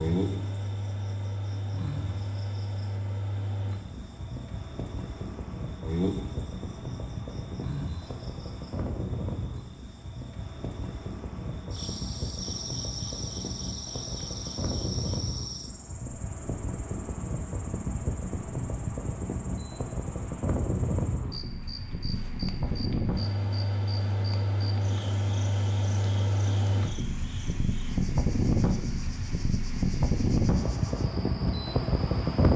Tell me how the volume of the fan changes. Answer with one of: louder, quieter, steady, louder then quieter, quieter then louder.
louder.